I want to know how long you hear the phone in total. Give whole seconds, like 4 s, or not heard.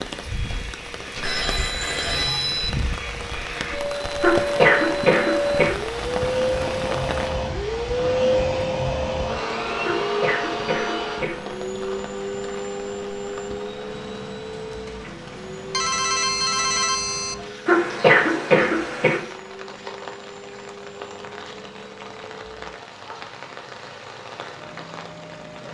3 s.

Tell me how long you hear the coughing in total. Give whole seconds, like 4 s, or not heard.
5 s.